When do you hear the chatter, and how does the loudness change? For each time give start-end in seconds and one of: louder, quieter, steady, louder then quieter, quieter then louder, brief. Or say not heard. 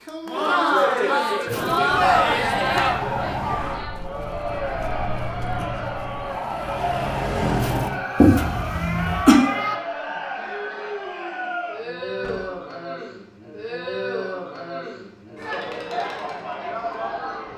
0.1-17.5 quieter.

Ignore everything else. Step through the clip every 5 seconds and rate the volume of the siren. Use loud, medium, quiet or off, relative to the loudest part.
loud, loud, off, off.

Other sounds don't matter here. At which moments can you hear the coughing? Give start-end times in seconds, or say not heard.
8.2-9.3.